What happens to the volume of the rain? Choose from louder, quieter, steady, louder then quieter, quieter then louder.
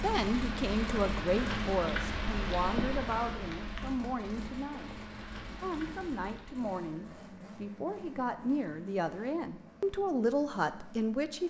quieter.